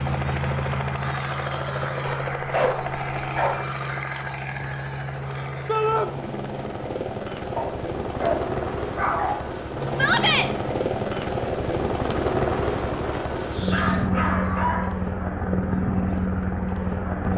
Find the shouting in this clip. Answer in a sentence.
The shouting can be heard from 5.7 to 6.1 s and from 9.9 to 10.5 s.